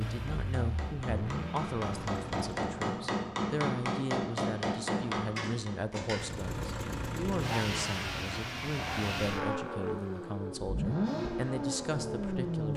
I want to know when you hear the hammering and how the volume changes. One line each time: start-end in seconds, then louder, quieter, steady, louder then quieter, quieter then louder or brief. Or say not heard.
0.1-6.0 louder.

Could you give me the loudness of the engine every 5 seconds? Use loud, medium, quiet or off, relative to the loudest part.
medium, loud, loud.